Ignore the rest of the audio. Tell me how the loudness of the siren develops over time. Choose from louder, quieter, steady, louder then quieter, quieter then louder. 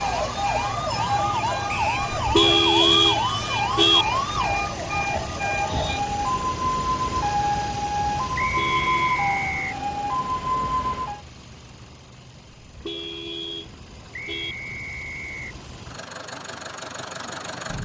steady.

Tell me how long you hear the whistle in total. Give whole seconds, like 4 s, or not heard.
3 s.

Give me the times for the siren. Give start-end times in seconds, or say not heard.
0.0-11.2.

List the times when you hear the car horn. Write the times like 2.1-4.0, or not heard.
2.1-4.0, 8.4-9.2, 12.6-14.6.